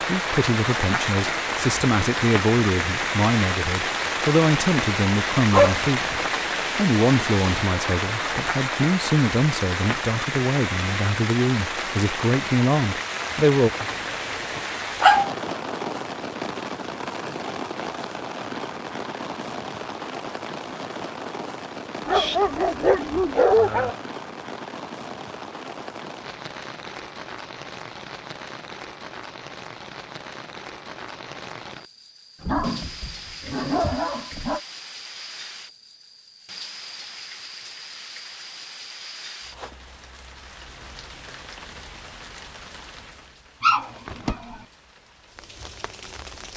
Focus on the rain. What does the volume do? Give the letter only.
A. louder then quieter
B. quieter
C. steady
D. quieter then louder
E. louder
B.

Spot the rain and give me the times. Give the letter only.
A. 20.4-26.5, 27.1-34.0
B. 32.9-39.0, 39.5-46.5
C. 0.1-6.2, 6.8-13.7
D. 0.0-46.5
D.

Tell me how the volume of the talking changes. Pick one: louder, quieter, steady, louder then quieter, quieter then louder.
steady.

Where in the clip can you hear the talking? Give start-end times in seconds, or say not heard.
0.1-6.2, 6.8-13.7.